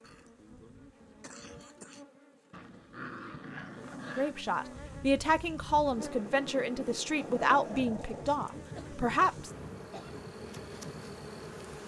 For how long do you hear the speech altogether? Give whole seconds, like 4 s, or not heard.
5 s.